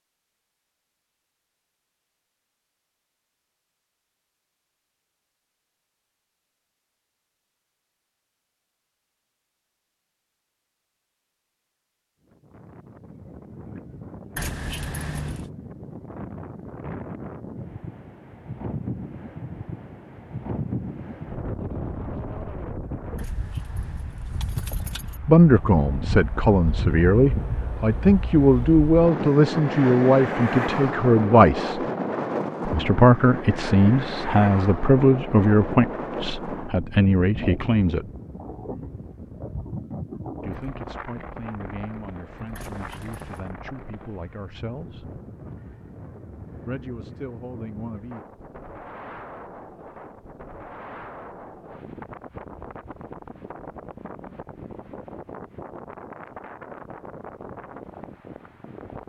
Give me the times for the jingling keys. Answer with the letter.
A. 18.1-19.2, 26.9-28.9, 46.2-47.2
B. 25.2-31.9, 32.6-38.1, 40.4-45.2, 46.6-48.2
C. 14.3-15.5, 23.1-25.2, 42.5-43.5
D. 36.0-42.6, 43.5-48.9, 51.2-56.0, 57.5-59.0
C.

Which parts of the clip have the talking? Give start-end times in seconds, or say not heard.
25.2-31.9, 32.6-38.1, 40.4-45.2, 46.6-48.2.